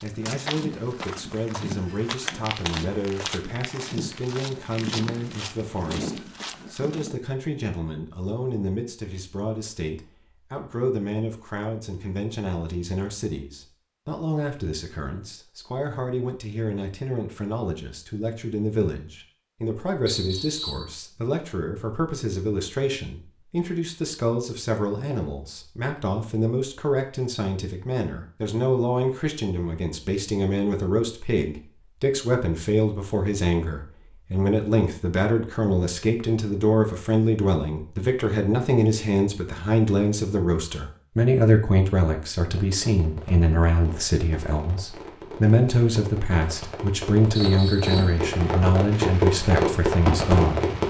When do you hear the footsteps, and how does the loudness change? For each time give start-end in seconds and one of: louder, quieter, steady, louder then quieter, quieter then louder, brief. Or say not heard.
0.0-7.2 steady.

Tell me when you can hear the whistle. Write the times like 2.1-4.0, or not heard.
20.1-20.9, 47.4-48.2.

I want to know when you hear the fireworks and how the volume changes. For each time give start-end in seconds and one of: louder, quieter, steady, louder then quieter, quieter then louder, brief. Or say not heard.
42.5-50.8 louder.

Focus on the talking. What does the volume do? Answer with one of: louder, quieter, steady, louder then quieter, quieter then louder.
louder.